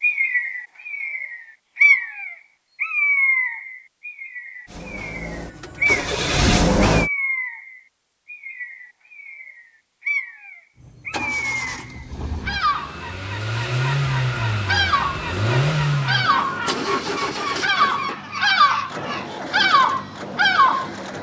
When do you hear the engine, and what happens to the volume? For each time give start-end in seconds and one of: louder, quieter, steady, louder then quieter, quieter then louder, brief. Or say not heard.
4.7-7.1 brief
10.8-21.1 louder then quieter.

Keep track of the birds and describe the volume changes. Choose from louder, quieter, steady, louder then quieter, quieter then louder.
quieter then louder.